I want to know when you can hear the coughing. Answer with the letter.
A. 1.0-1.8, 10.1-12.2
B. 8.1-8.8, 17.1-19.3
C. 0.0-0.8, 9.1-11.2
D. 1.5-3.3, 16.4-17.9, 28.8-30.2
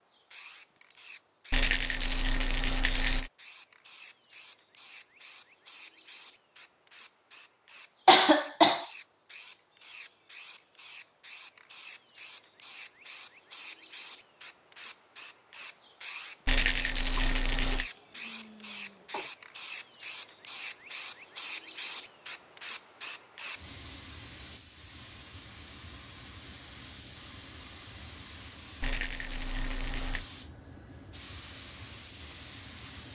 B.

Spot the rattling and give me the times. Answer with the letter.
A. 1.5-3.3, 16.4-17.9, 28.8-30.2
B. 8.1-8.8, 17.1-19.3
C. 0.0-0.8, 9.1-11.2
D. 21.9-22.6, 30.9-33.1
A.